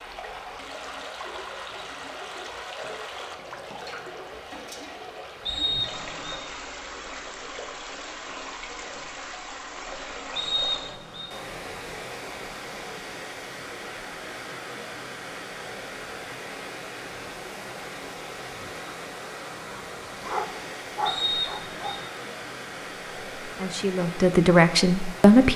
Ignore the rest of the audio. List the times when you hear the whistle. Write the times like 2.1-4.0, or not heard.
5.5-6.4, 10.3-11.3, 21.1-22.0.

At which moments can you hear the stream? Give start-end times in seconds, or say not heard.
0.0-25.5.